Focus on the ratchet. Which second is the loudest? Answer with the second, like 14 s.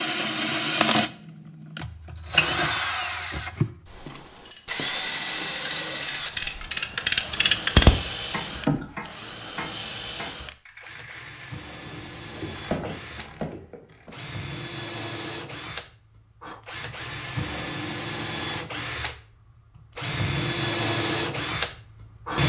8 s.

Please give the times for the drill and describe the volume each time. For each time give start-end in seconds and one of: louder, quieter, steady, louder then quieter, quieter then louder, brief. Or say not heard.
0.0-22.4 quieter then louder.